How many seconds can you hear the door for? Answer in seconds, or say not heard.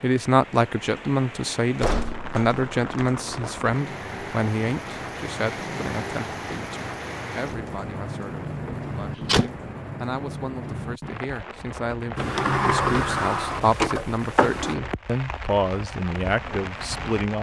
5 s.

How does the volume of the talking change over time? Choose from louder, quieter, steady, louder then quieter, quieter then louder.
quieter then louder.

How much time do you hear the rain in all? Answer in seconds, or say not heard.
17 s.